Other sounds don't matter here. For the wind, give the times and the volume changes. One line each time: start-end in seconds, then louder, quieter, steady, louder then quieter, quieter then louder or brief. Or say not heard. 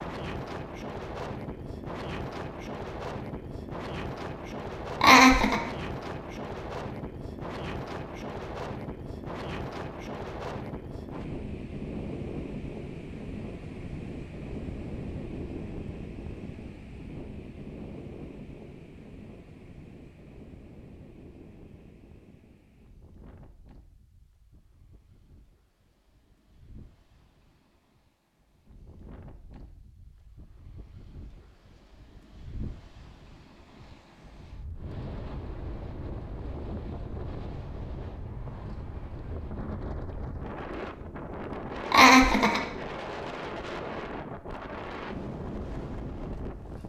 0.0-46.8 quieter then louder.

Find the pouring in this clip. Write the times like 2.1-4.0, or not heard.
not heard.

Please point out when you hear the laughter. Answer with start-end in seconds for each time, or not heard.
5.0-5.6, 41.9-42.6.